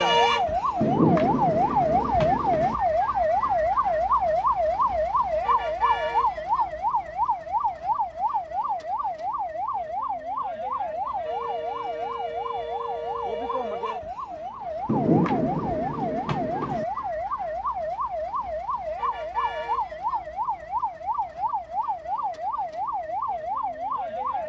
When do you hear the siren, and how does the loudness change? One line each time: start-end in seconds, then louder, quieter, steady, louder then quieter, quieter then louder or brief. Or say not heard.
0.0-24.4 quieter.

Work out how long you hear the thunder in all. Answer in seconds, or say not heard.
4 s.